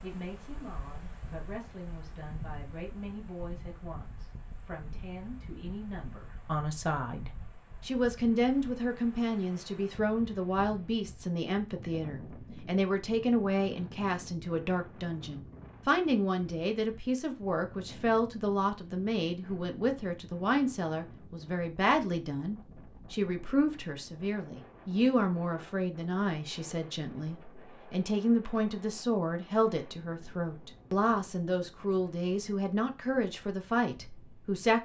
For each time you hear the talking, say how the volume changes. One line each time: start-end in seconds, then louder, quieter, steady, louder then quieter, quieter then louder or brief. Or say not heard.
0.0-34.7 louder.